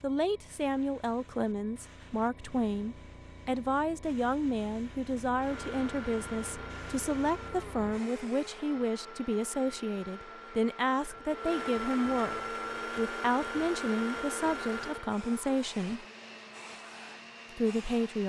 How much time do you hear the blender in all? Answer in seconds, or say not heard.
13 s.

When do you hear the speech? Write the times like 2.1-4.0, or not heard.
0.0-16.1, 17.6-18.2.